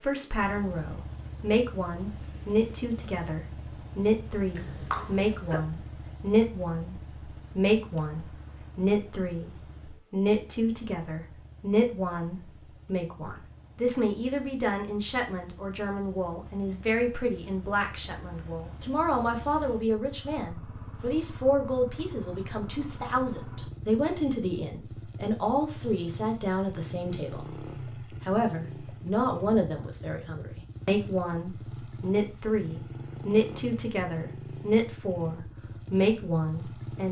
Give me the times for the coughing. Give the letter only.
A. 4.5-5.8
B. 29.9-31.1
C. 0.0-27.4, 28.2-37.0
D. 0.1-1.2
A.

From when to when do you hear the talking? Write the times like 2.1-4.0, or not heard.
0.0-27.4, 28.2-37.0.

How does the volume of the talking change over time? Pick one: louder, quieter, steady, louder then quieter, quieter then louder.
steady.